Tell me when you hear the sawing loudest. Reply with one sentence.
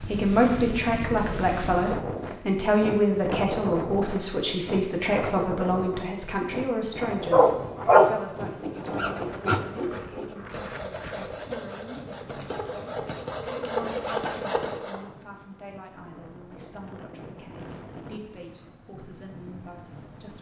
The loudest moment of the sawing is at 14 seconds.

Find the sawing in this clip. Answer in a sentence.
The sawing can be heard from 8.5 to 15.1 s.